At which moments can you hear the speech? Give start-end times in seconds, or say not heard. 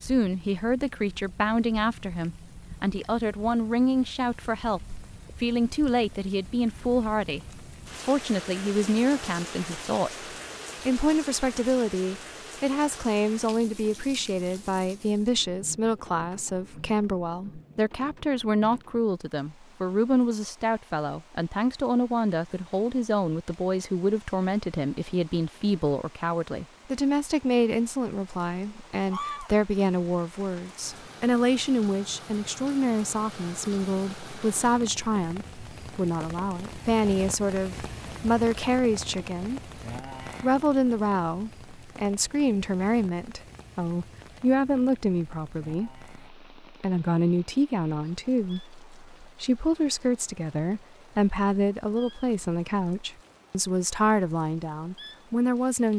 0.0-55.9.